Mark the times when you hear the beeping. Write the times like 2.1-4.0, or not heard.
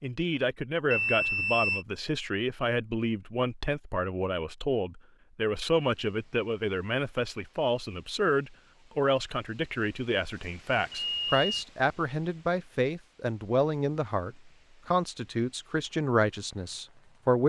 0.9-1.9, 10.9-11.4.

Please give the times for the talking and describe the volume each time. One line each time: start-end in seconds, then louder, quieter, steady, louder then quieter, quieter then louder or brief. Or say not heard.
0.0-17.4 steady.